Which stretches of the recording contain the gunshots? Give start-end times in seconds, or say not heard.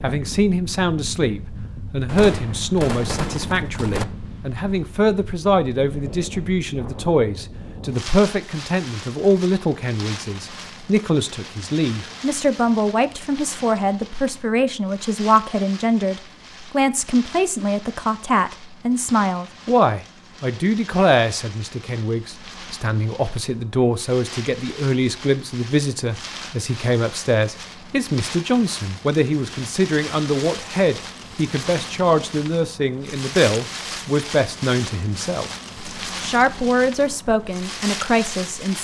2.0-4.0.